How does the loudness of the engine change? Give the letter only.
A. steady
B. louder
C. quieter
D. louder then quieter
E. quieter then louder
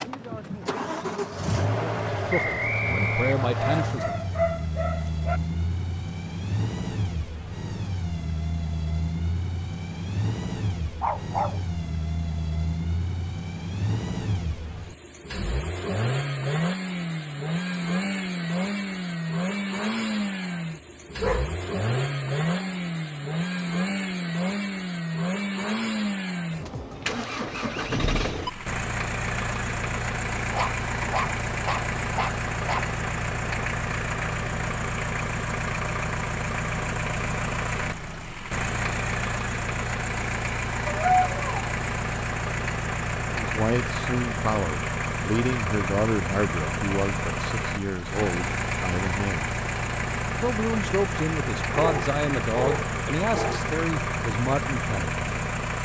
A.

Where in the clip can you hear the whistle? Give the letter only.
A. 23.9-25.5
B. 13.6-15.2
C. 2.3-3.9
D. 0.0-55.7
C.